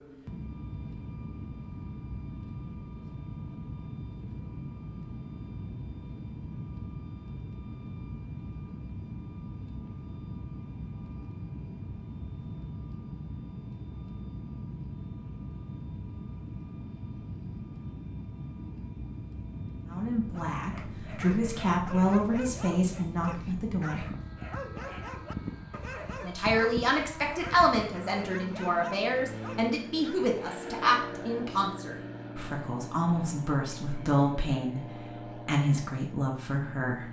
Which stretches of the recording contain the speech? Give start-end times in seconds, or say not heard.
19.9-24.1, 26.2-37.0.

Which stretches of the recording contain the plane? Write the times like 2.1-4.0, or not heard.
0.0-37.0.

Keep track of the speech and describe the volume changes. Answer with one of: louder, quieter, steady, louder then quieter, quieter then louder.
steady.